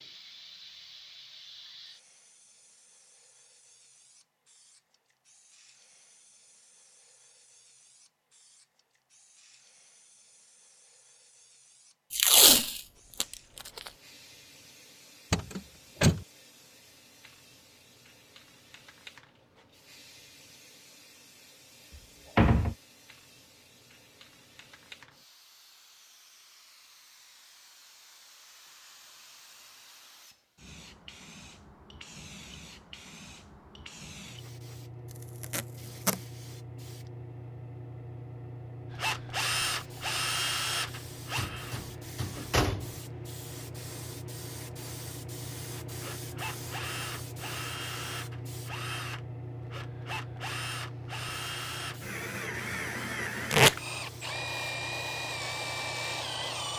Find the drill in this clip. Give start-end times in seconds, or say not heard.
38.9-42.6, 46.0-56.7.